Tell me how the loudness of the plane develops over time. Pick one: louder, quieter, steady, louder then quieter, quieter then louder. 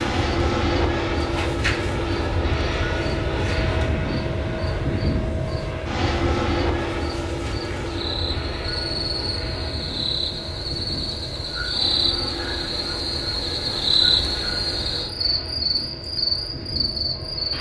quieter.